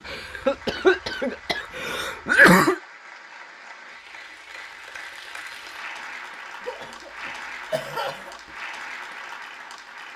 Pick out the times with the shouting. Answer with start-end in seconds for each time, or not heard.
not heard.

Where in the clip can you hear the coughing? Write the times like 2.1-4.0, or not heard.
0.1-2.8, 6.7-8.3.